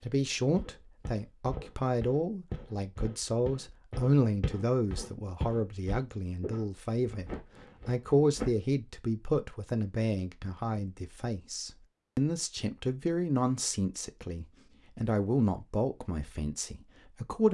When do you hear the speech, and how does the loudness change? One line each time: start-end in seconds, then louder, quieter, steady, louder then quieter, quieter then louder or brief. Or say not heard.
0.0-17.4 steady.